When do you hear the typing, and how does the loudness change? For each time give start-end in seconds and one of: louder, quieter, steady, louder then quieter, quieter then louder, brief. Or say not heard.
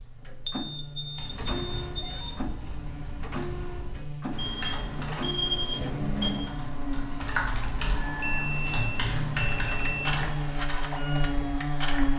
1.1-10.7 louder.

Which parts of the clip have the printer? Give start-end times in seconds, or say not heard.
0.0-12.1.